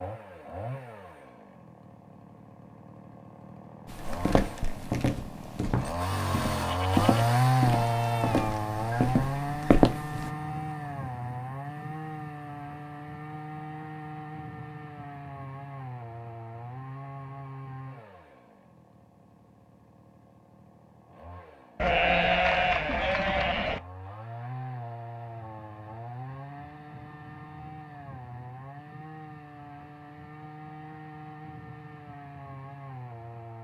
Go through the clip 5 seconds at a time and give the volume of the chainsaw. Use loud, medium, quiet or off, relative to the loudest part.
quiet, loud, medium, quiet, quiet, quiet, quiet.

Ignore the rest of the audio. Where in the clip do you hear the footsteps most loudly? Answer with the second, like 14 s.
10 s.